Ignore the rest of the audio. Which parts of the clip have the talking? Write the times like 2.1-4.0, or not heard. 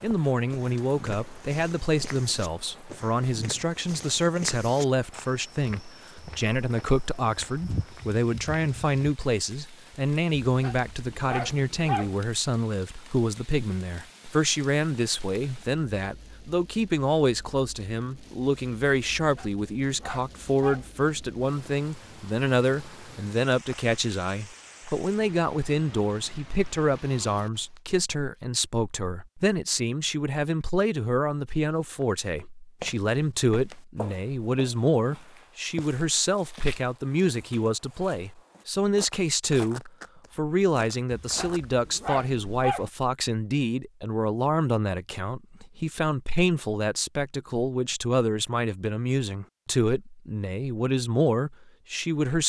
0.0-52.4.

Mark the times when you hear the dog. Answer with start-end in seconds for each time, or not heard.
10.4-12.2, 19.1-20.9, 41.1-42.9.